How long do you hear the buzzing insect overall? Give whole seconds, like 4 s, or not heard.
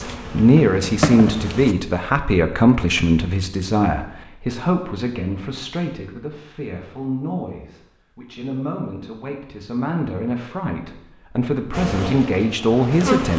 3 s.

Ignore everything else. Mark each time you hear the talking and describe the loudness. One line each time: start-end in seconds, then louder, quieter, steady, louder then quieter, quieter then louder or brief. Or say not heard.
0.0-13.3 quieter then louder.